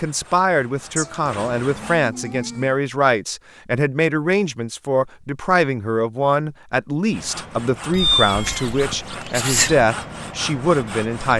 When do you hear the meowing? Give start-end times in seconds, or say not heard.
0.9-2.8, 7.9-9.8.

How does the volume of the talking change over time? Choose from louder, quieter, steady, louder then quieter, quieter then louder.
steady.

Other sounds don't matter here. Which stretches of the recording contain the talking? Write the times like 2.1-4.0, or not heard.
0.0-11.3.